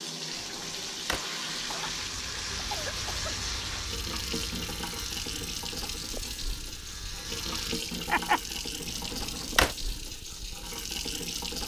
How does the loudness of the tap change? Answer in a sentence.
The loudness of the tap stays about the same.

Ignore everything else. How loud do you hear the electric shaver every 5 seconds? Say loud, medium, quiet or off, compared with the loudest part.
loud, loud, off.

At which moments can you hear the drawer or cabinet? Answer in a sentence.
The drawer or cabinet can be heard from 0.3 to 1.2 s and from 8.8 to 9.8 s.